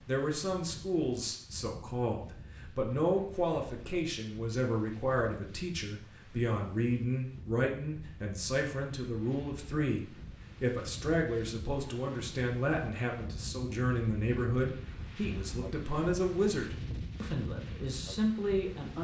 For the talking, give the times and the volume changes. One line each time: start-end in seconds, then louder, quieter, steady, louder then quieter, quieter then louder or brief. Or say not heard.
0.1-18.9 steady.